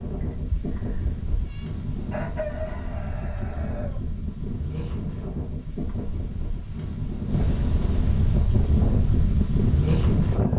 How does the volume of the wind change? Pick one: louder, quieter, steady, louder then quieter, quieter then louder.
louder.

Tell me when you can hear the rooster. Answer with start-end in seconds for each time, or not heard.
2.1-4.0.